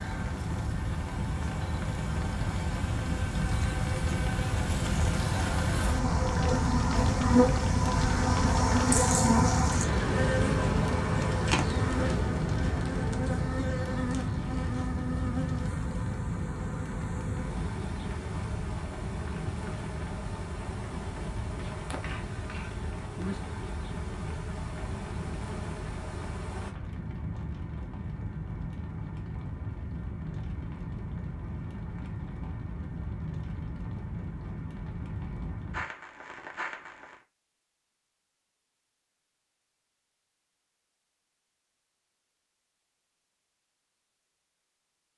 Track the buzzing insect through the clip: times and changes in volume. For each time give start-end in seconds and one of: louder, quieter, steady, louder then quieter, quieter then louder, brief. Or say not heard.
0.0-26.8 louder then quieter.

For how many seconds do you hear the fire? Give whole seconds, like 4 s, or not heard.
37 s.